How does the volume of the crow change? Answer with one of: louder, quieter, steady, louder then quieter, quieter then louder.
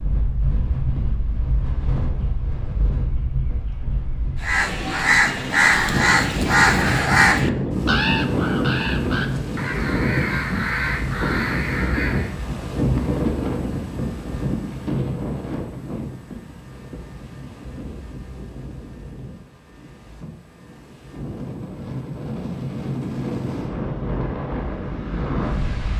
quieter.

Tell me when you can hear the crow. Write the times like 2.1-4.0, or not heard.
4.4-12.3.